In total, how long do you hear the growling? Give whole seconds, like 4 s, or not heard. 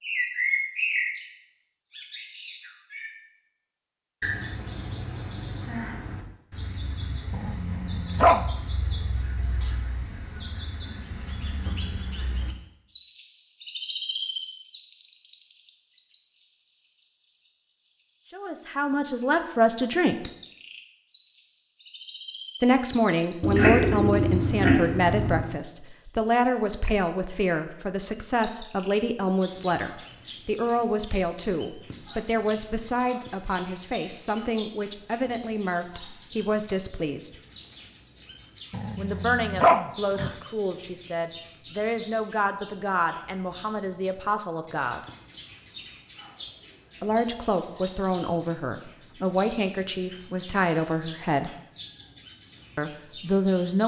3 s.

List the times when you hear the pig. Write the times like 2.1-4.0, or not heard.
23.4-25.4.